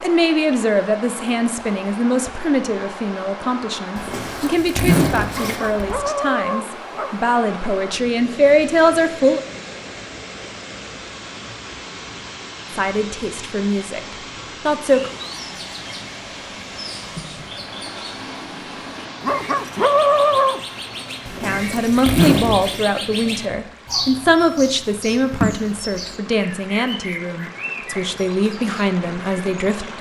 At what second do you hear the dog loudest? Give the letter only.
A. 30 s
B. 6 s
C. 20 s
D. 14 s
C.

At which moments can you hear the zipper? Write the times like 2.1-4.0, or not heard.
4.0-6.0, 21.2-22.8.